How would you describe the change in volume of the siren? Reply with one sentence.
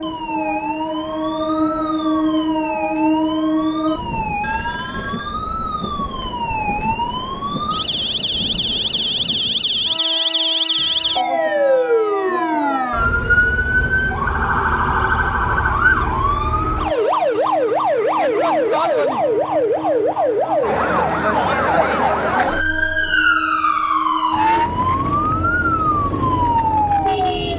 The loudness of the siren goes up.